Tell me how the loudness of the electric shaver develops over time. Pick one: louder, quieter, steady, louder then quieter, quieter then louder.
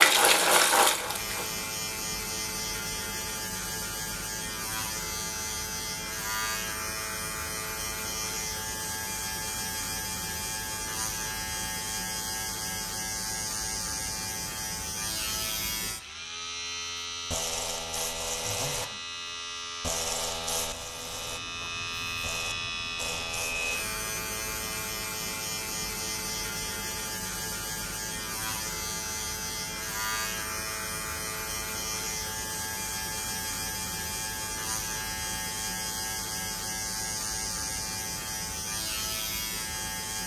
steady.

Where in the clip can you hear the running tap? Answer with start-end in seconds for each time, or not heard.
0.0-1.6.